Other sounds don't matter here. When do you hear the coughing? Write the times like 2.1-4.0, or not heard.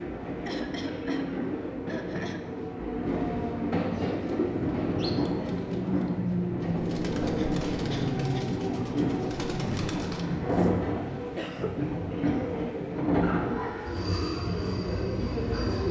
0.5-2.5, 7.3-8.5, 11.3-12.6.